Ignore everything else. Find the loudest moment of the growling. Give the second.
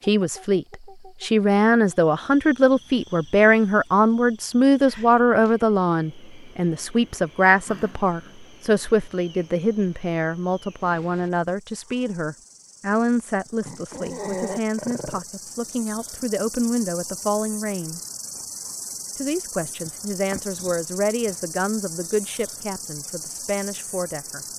14 s.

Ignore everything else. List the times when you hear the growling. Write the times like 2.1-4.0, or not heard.
7.7-8.3, 13.7-15.2.